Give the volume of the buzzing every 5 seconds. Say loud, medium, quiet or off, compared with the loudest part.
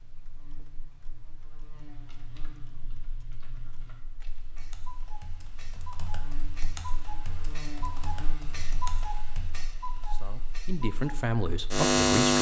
quiet, quiet, loud.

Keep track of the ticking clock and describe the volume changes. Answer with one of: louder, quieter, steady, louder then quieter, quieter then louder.
louder.